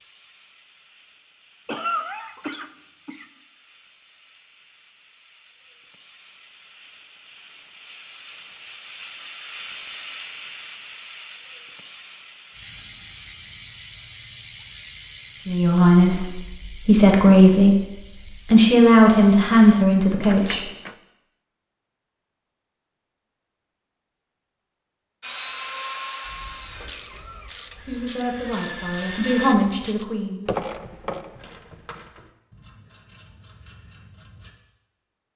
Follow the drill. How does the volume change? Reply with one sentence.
The loudness of the drill goes down, then up.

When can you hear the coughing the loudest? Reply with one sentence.
The volume of the coughing peaks at 2 seconds.